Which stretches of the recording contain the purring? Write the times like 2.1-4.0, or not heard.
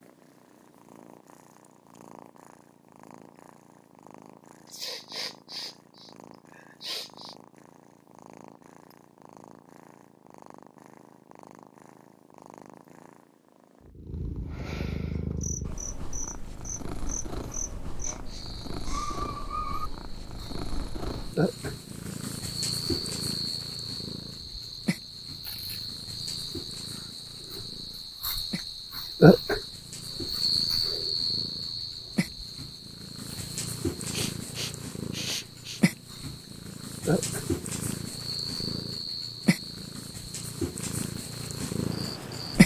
0.0-42.6.